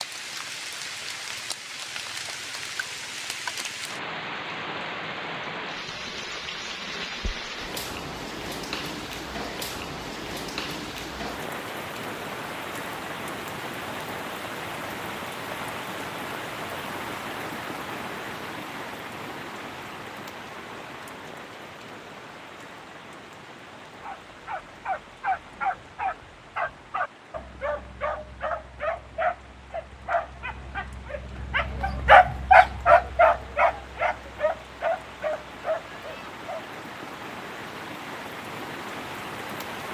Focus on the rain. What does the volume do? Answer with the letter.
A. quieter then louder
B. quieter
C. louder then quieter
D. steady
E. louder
A.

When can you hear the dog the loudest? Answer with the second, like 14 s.
32 s.